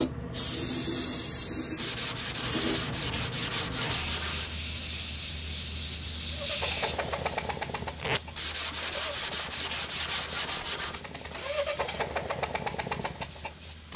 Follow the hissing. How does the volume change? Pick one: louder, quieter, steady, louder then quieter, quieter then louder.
quieter.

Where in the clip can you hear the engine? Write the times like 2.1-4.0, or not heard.
6.3-13.9.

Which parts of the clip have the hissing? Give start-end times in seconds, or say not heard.
0.0-13.9.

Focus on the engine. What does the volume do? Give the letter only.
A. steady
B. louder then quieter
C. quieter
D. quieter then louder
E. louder
D.